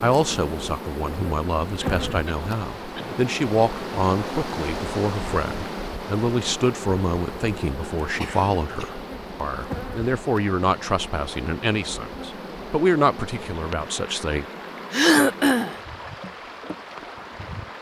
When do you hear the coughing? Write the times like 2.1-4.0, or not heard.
1.8-3.2, 8.0-9.0, 14.9-15.8.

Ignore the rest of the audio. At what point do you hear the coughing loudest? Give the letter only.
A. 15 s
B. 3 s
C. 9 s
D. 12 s
A.